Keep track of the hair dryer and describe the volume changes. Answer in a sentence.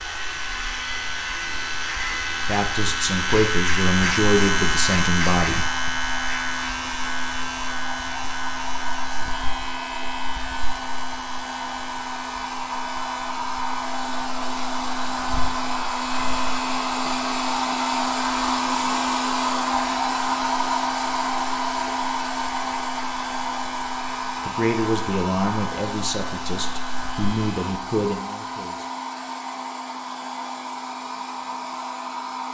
The loudness of the hair dryer goes up, then down.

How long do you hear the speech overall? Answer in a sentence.
The speech can be heard for 8 seconds in total.